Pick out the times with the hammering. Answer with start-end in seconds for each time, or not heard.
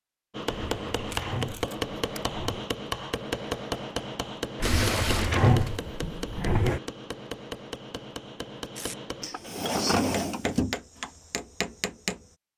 0.3-12.3.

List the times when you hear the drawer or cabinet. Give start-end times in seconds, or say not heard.
0.5-2.7, 4.6-6.8, 9.2-10.8.